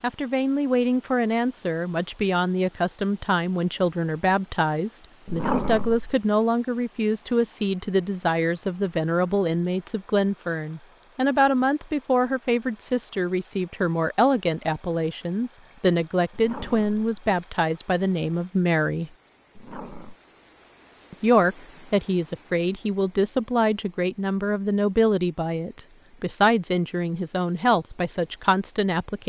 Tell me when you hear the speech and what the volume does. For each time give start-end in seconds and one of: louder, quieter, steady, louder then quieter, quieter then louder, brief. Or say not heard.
0.0-19.1 steady
21.1-29.2 steady.